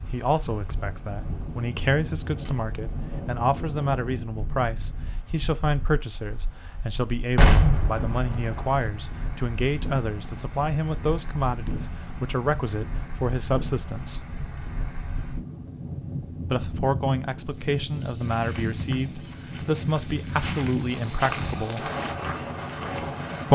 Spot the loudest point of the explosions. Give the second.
8 s.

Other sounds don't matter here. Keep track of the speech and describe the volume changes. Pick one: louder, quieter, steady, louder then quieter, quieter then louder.
steady.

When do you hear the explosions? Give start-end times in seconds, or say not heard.
7.3-8.8.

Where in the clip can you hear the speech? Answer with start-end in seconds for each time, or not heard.
0.1-14.2, 16.4-21.9.